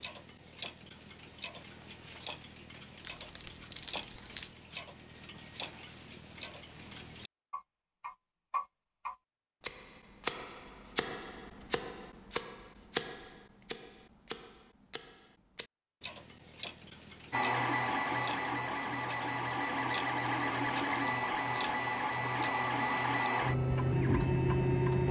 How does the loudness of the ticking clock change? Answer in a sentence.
The loudness of the ticking clock goes up, then down.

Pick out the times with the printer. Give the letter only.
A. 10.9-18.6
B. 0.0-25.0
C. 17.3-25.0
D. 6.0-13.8
C.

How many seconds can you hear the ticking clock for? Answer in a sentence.
The ticking clock can be heard for 25 seconds in total.